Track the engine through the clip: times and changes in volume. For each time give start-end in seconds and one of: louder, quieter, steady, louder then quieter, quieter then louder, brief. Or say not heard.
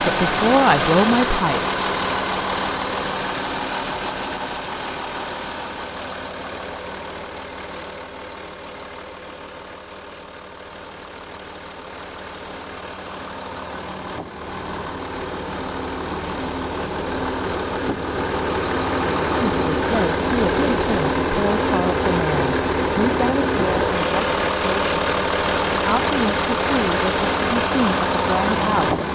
0.0-29.1 quieter then louder.